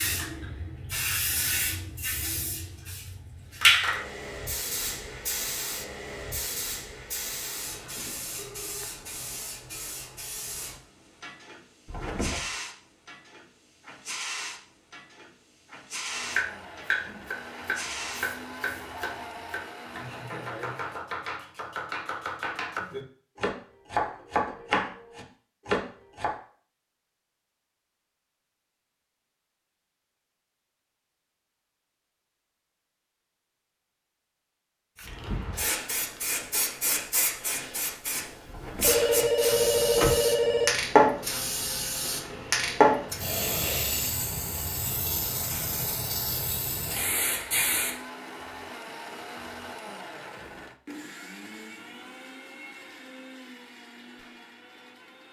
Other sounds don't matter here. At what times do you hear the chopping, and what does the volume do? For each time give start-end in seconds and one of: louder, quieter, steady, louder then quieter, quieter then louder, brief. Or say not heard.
16.4-26.4 quieter then louder.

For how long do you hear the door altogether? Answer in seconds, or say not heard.
2 s.